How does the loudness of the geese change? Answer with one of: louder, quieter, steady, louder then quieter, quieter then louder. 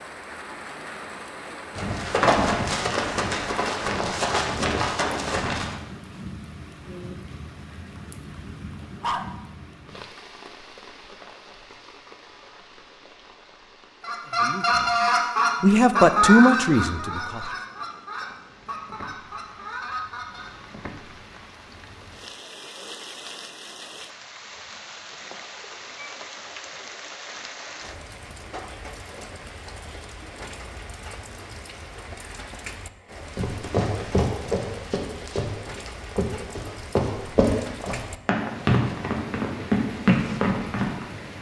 quieter.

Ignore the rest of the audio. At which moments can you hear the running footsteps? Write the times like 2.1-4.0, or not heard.
1.8-5.8, 33.4-41.0.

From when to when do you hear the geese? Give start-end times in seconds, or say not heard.
14.0-20.5.